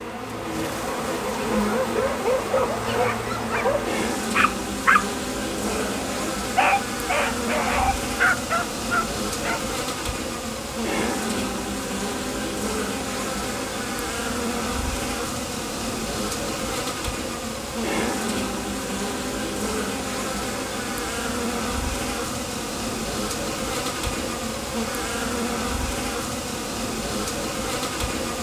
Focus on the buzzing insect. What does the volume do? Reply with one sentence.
The volume of the buzzing insect stays about the same.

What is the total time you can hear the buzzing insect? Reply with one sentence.
You can hear the buzzing insect for 28 seconds altogether.